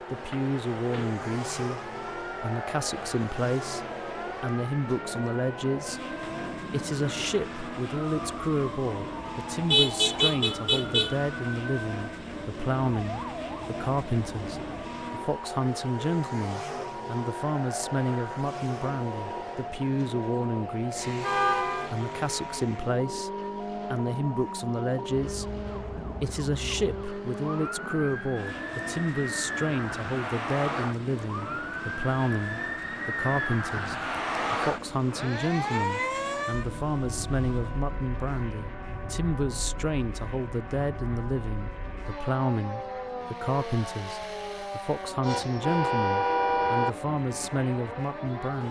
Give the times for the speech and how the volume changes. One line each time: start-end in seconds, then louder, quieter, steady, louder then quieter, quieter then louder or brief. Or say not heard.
0.1-48.6 steady.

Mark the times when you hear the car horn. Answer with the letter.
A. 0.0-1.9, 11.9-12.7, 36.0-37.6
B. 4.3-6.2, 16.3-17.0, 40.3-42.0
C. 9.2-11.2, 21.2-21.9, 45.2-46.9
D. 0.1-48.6
C.